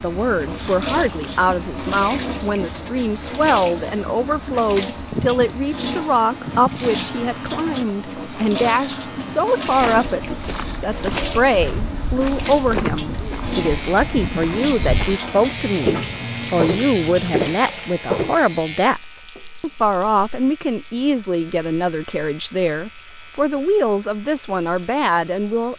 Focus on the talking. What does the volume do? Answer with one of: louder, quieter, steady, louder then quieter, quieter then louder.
steady.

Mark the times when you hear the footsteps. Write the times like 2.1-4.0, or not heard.
9.8-18.5.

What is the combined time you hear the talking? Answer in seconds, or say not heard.
25 s.